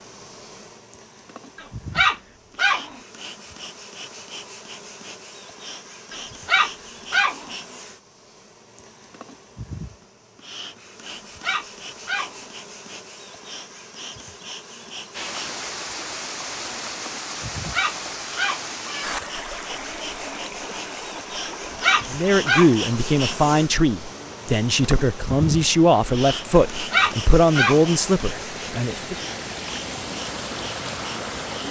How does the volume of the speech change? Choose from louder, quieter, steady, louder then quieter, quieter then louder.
steady.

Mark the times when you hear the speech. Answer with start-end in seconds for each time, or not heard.
22.1-29.1.